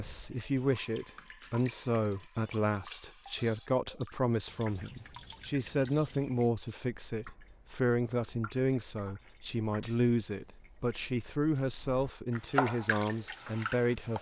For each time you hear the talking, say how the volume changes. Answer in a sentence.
You can hear the talking from 0.0 to 14.1 s, at a steady volume.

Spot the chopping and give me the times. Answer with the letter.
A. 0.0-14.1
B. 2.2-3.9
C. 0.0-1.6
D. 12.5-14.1
D.